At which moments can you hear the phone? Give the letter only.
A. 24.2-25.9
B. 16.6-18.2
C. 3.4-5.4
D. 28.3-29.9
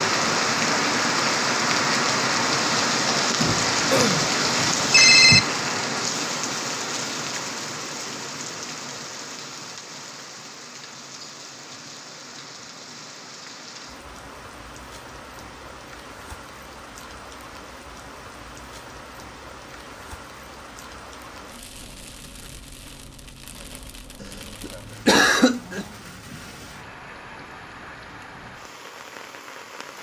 C.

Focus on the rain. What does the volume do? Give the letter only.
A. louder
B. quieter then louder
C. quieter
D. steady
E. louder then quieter
C.